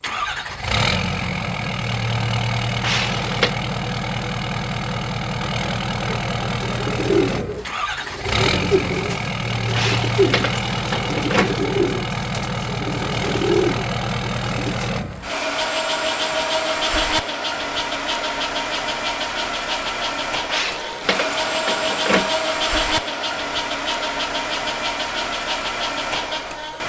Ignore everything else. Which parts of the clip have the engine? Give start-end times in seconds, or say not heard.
0.0-26.8.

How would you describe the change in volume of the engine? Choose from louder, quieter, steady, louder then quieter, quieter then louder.
steady.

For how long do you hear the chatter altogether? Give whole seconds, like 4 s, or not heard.
not heard.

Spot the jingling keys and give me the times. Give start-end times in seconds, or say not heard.
2.8-3.5, 9.7-11.6, 20.4-22.4.